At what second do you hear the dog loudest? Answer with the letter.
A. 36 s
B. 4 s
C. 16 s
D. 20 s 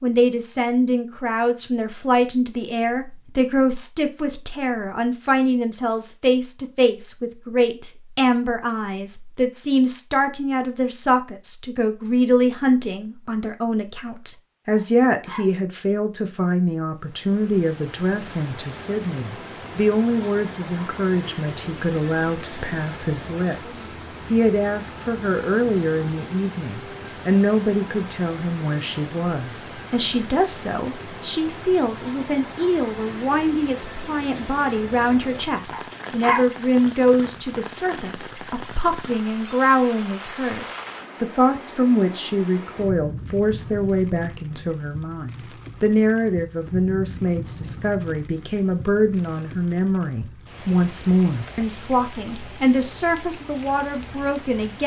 A.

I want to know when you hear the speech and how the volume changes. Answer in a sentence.
You can hear the speech from 0.0 to 54.8 s, at a steady volume.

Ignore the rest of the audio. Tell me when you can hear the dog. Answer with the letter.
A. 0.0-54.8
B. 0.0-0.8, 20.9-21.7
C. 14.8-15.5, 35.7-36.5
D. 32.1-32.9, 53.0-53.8
C.